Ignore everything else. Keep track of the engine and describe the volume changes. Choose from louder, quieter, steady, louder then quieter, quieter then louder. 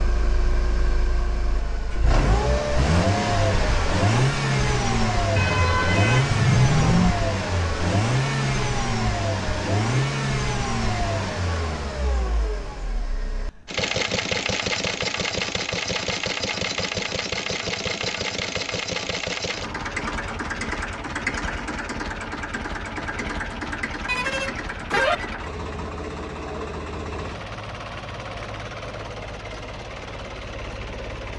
quieter.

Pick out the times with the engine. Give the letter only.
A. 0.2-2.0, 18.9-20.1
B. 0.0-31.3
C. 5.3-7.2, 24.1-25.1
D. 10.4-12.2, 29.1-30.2
B.